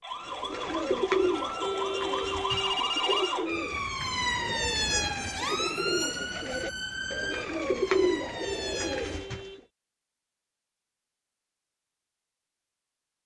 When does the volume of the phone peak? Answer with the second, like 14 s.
3 s.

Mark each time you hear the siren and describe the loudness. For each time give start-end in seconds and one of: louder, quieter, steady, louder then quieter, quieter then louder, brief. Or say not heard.
0.0-9.2 louder then quieter.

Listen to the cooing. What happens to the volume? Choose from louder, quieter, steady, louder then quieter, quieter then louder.
quieter then louder.